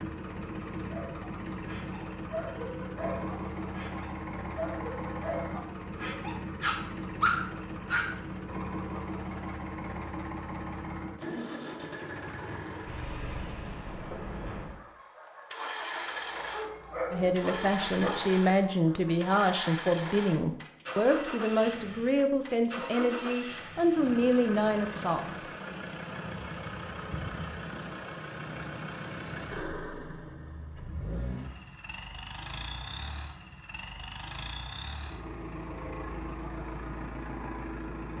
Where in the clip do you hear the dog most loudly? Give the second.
7 s.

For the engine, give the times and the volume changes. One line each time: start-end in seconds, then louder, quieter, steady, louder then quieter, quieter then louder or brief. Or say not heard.
0.0-38.1 steady.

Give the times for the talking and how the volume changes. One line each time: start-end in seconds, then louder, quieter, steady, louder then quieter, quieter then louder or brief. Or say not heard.
17.1-25.4 steady.